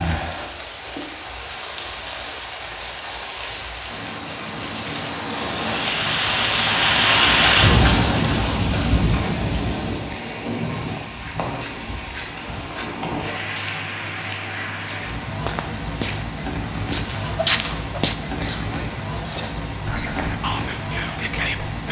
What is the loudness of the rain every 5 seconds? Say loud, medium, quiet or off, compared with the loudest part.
medium, loud, medium, medium, medium.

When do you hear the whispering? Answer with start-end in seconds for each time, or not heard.
18.4-21.8.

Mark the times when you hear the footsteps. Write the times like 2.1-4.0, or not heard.
14.7-18.1.